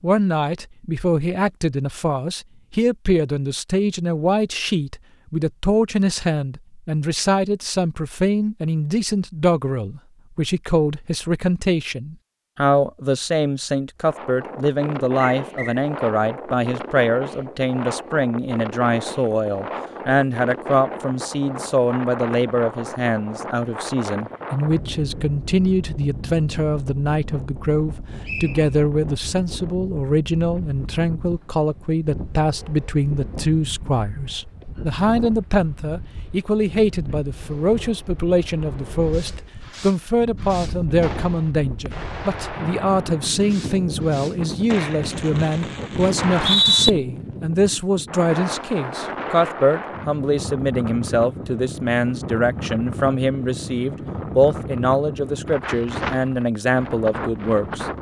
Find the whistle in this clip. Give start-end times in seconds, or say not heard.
15.2-15.8, 28.2-28.7, 46.1-46.9.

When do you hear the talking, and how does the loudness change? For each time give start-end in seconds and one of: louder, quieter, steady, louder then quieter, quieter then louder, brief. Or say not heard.
0.0-57.9 steady.